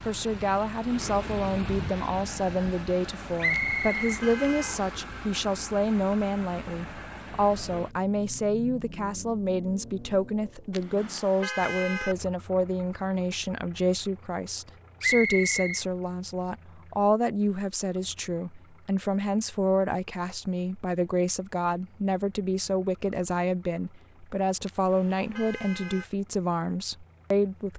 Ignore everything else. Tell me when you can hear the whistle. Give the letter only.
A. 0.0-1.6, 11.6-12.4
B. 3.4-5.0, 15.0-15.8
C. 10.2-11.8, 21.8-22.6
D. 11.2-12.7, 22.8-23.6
B.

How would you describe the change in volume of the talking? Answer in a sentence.
The loudness of the talking stays about the same.